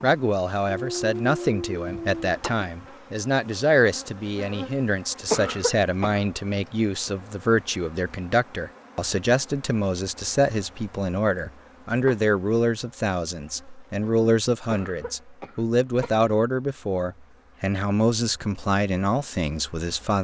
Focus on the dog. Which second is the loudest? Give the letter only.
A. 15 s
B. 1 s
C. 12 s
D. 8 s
B.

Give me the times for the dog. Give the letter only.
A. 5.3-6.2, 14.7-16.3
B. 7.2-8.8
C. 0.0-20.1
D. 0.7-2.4
D.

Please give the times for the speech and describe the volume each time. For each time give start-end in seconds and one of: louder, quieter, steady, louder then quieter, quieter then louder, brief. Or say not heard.
0.0-20.1 steady.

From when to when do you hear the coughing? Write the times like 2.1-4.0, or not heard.
5.3-6.2, 14.7-16.3.